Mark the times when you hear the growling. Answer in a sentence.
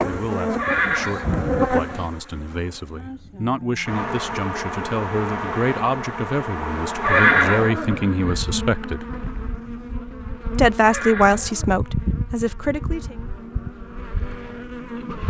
The growling can't be heard in this clip.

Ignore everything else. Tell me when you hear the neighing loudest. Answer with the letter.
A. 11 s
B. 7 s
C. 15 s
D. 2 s
B.